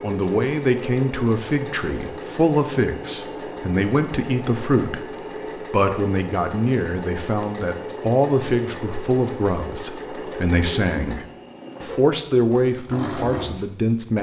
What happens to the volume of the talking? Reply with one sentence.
The loudness of the talking stays about the same.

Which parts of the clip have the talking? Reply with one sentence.
You can hear the talking from 0.0 to 5.0 s and from 5.7 to 14.1 s.